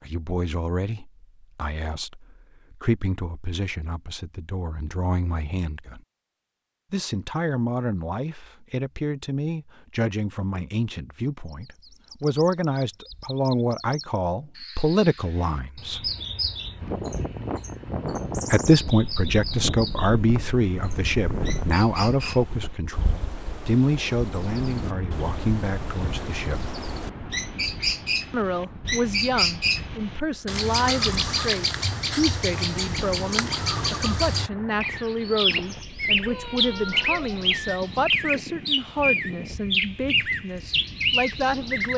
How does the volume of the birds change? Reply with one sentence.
The loudness of the birds goes up.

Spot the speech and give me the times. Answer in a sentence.
The speech can be heard from 0.0 to 6.0 s, from 6.9 to 16.1 s, from 18.5 to 26.7 s and from 28.3 to 41.9 s.